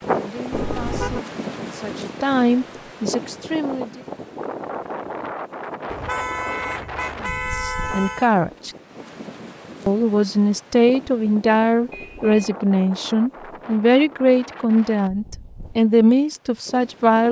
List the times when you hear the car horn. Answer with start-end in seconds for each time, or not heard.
0.5-1.2, 5.9-8.3, 11.9-12.6.